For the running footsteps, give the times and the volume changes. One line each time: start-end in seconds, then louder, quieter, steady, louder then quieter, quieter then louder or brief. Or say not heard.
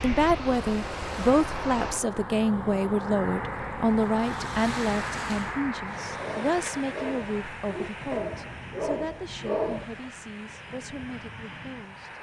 not heard.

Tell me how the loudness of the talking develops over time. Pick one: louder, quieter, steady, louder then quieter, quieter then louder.
quieter.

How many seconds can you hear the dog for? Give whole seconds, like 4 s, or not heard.
4 s.